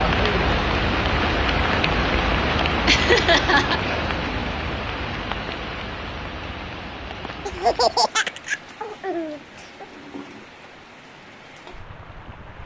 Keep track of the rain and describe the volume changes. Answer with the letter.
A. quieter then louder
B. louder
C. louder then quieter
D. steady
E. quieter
E.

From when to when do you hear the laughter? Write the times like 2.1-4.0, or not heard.
2.9-3.8, 7.5-9.8.